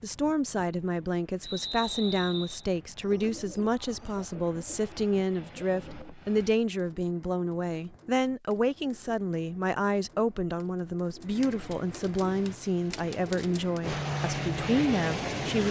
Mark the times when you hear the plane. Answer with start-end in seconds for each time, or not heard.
0.0-6.5, 12.2-15.6.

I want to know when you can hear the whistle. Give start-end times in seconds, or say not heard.
1.4-2.6.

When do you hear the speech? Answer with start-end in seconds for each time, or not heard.
0.0-15.6.